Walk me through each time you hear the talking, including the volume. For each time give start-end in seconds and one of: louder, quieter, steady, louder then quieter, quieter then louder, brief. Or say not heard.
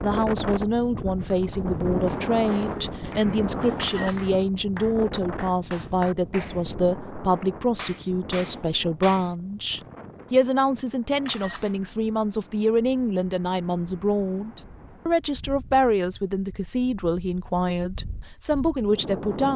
0.0-19.5 steady.